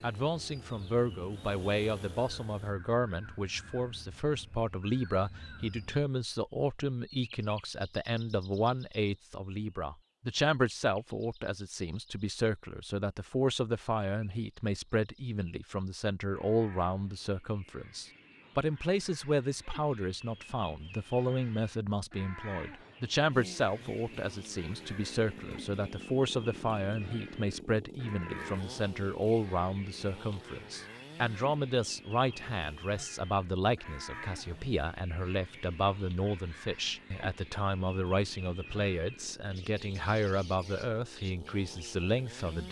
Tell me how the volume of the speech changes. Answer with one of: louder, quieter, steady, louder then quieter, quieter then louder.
steady.